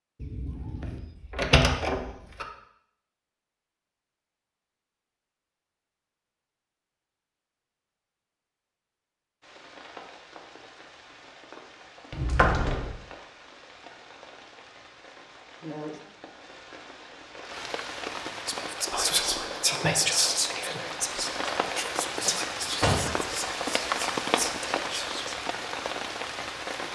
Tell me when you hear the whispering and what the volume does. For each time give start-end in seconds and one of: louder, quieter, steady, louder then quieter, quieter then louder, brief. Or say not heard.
18.4-25.4 quieter.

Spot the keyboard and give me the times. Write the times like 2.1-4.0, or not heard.
not heard.